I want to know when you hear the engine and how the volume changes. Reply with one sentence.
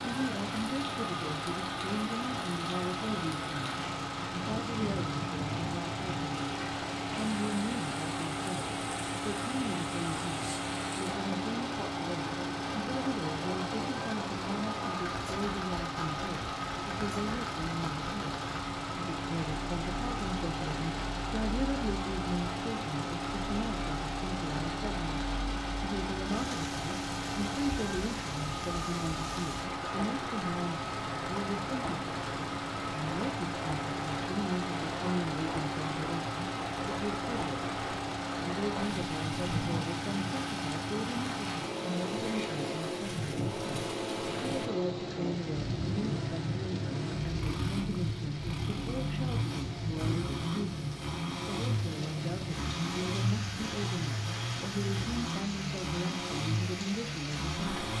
You can hear the engine from 0.0 to 57.9 s, at a steady volume.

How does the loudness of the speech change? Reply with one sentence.
The volume of the speech stays about the same.